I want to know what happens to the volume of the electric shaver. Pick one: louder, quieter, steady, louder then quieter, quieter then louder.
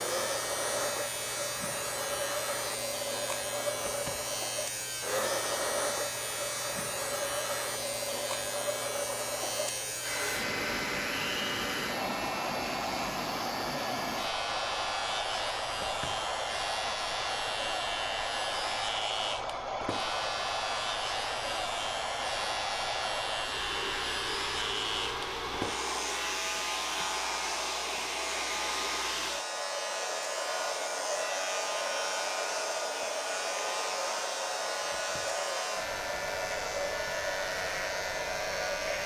steady.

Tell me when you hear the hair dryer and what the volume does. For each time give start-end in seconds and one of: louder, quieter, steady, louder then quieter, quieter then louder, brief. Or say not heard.
0.0-39.0 steady.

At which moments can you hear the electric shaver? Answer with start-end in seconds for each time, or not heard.
0.0-39.0.